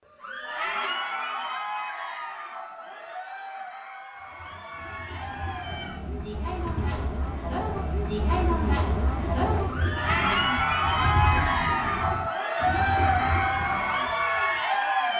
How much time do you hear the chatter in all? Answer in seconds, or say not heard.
15 s.